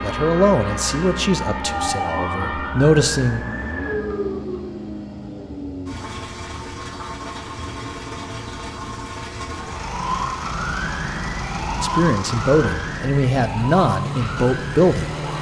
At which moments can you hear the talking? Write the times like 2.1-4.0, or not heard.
0.0-3.5, 11.8-15.2.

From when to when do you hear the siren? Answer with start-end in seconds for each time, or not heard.
0.0-4.9, 9.6-15.3.